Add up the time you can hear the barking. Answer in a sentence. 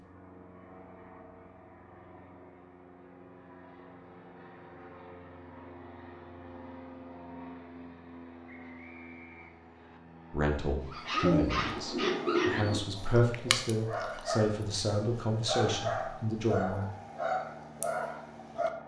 The barking can be heard for 8 seconds in total.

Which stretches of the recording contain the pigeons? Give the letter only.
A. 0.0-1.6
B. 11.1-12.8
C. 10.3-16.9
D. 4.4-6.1
B.